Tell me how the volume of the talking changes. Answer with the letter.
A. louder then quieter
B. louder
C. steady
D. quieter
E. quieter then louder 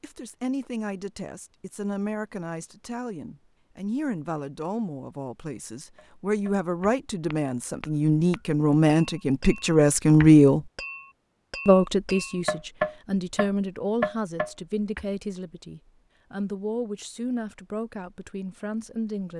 A.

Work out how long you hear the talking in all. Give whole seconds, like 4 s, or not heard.
18 s.